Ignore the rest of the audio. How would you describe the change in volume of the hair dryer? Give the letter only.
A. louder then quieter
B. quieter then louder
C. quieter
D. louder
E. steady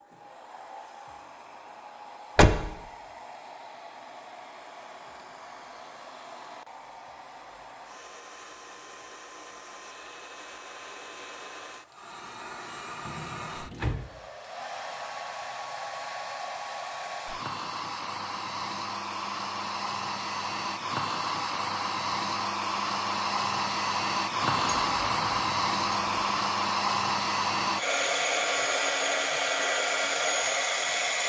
D.